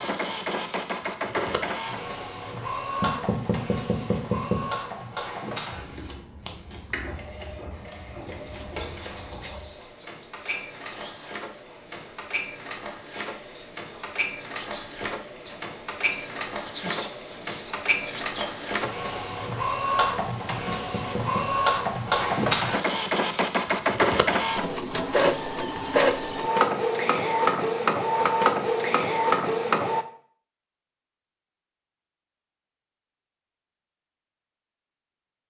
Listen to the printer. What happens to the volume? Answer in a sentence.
The loudness of the printer goes down, then up.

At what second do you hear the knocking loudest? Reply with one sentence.
The loudest moment of the knocking is at 4 seconds.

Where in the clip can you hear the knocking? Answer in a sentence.
The knocking can be heard from 3.0 to 4.8 s and from 20.6 to 21.5 s.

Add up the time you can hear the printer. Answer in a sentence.
You can hear the printer for 30 seconds altogether.